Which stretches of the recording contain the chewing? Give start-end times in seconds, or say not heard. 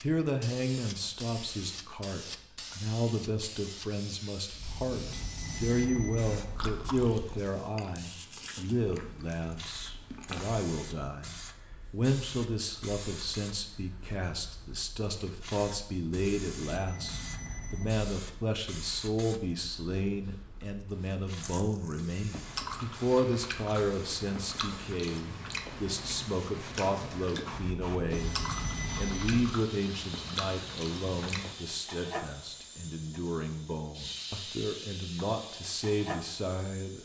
6.5-10.5, 21.3-31.6.